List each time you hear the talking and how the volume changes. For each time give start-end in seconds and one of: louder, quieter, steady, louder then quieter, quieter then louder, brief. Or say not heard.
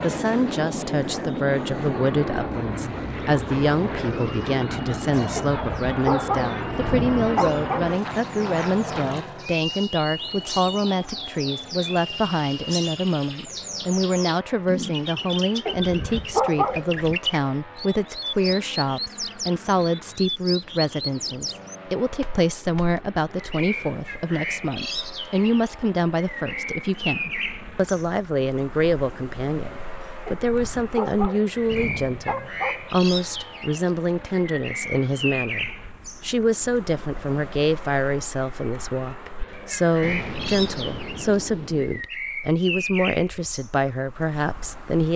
0.0-45.1 steady.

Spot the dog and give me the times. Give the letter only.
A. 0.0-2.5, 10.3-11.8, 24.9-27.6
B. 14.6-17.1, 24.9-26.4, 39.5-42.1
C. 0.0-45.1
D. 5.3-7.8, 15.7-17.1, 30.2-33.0
D.